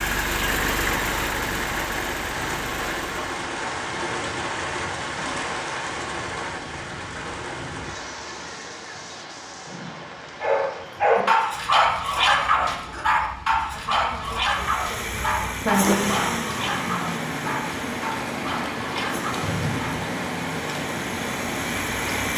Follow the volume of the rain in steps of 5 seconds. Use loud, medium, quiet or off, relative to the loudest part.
loud, loud, quiet, loud, loud.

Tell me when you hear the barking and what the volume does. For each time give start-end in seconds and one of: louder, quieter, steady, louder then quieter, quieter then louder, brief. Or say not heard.
10.4-20.0 quieter.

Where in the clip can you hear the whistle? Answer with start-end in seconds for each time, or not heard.
19.4-20.1.